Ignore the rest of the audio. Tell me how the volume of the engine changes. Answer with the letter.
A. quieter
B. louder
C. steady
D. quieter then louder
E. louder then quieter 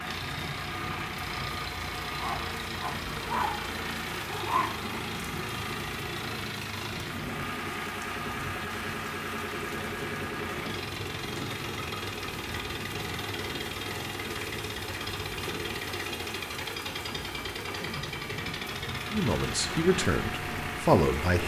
C.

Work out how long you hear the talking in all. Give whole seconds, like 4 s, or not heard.
2 s.